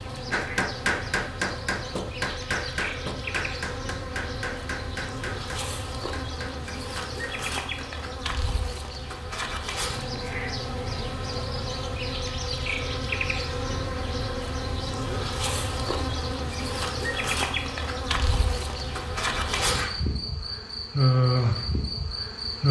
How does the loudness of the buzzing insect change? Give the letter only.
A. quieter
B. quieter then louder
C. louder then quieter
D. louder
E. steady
D.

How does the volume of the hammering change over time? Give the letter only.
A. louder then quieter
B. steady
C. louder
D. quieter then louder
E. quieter
E.